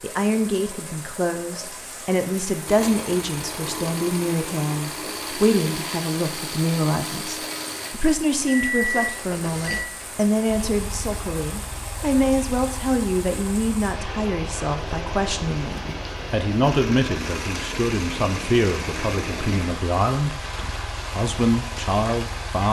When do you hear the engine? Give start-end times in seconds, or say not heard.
2.6-22.6.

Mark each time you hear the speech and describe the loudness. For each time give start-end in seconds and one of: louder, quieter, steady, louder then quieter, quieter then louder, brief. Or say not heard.
0.0-22.6 steady.